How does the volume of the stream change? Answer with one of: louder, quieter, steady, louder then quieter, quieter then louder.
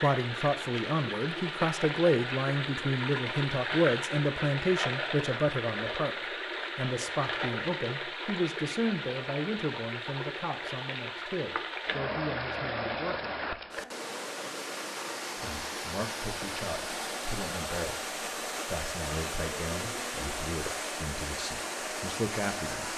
steady.